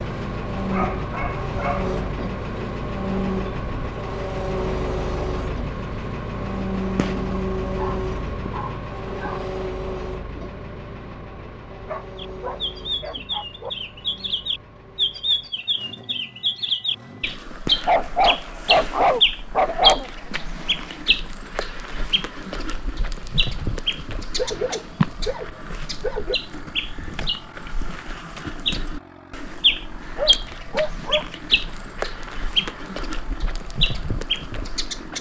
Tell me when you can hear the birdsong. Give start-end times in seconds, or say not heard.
12.2-35.1.